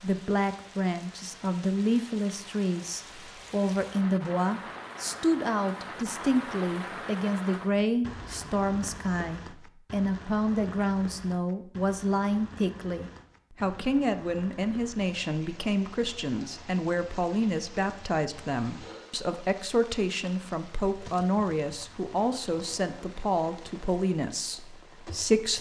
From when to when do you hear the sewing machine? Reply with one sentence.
The sewing machine can't be heard in this clip.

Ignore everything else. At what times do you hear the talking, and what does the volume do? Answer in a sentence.
The talking can be heard from 0.0 to 25.5 s, at a steady volume.